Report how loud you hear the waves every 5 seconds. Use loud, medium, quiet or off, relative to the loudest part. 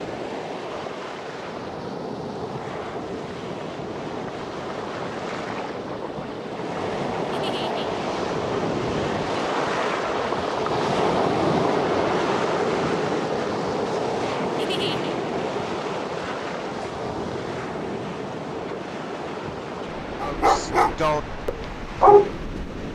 medium, loud, loud, medium, medium.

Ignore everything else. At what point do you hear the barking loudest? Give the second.
22 s.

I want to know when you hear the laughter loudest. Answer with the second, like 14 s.
15 s.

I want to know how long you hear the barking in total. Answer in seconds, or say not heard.
3 s.